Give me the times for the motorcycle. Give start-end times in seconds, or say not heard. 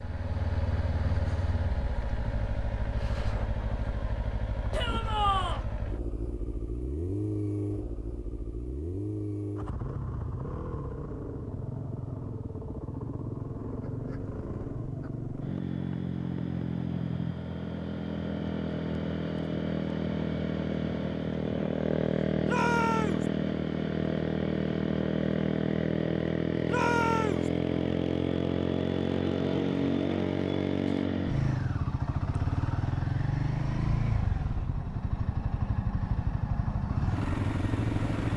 0.0-38.3.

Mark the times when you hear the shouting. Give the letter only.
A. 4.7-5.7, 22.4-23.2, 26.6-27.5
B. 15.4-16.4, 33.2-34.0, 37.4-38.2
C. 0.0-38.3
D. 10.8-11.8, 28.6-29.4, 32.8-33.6
A.